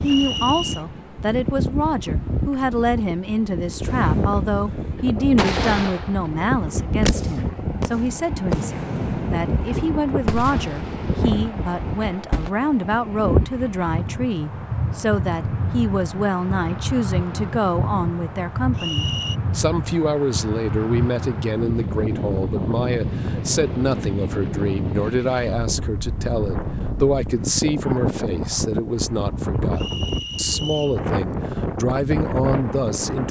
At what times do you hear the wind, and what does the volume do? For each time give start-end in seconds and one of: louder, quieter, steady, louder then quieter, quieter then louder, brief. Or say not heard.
0.0-33.2 steady.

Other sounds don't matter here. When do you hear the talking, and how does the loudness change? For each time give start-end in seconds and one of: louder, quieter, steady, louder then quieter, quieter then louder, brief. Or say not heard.
0.0-33.2 steady.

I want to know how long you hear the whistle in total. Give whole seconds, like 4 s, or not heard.
3 s.